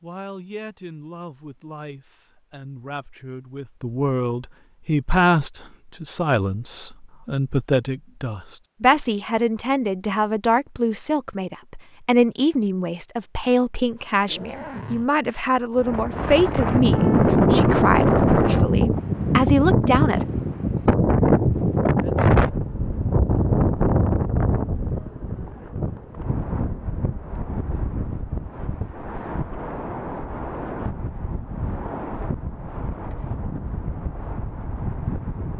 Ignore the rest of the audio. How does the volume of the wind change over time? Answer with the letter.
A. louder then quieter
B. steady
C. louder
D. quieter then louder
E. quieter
E.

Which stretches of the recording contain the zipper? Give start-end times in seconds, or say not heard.
14.2-15.1.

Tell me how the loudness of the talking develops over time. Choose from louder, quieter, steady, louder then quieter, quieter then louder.
louder.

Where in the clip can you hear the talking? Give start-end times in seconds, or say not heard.
0.0-20.2.